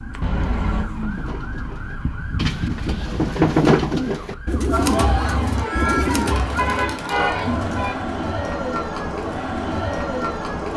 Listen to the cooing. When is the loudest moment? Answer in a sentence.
The loudest moment of the cooing is at 4 seconds.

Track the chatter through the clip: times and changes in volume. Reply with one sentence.
You can hear the chatter from 4.7 to 10.7 s, at a steady volume.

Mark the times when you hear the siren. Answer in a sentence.
You can hear the siren from 0.0 to 4.8 s.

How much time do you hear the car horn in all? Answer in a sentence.
You can hear the car horn for 2 seconds altogether.